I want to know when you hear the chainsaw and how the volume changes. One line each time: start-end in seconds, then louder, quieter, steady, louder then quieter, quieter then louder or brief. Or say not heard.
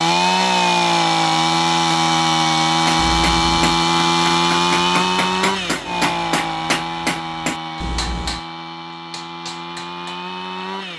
0.0-10.9 quieter.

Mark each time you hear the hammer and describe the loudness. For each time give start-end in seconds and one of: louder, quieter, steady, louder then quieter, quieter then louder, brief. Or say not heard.
2.8-10.2 louder then quieter.